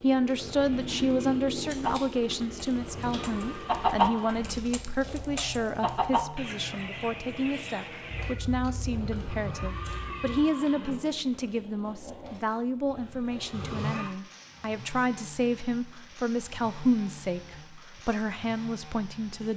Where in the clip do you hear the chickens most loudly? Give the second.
4 s.